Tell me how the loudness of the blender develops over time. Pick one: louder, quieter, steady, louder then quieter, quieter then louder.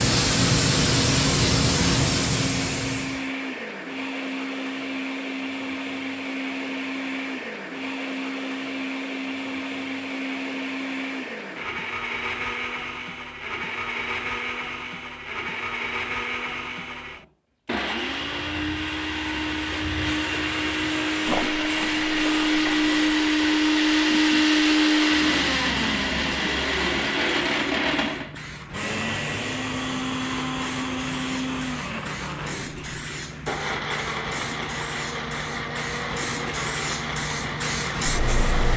louder then quieter.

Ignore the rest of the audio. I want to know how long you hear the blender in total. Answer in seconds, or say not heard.
39 s.